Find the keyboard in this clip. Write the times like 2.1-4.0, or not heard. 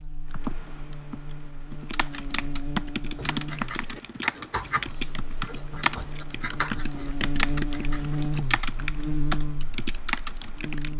0.3-10.9.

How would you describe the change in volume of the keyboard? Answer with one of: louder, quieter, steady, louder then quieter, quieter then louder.
louder.